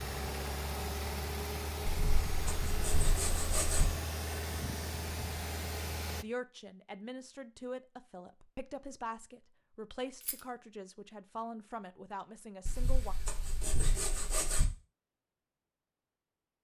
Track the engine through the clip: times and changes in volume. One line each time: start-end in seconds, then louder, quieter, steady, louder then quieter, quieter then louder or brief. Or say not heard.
0.0-6.2 steady.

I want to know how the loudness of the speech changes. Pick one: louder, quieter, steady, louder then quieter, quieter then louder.
steady.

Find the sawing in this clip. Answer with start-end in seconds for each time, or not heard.
1.9-3.9, 12.7-14.7.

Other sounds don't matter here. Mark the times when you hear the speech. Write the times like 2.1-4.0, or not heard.
6.2-13.2.